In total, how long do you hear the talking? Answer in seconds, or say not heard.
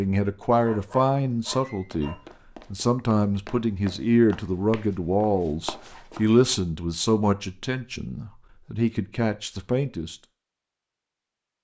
10 s.